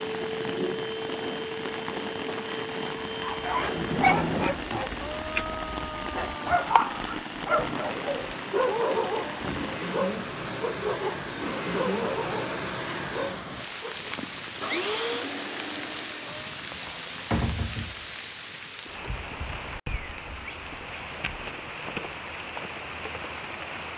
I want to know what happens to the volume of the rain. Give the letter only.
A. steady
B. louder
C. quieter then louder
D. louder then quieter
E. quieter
A.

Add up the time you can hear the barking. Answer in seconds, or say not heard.
11 s.